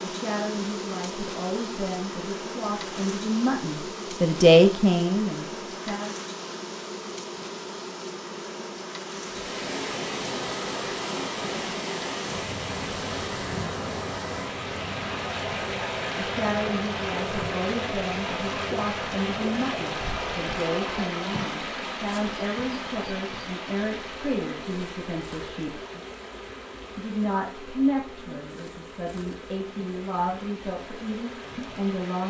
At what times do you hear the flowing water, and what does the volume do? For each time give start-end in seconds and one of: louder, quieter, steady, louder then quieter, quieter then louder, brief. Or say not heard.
9.2-32.2 quieter.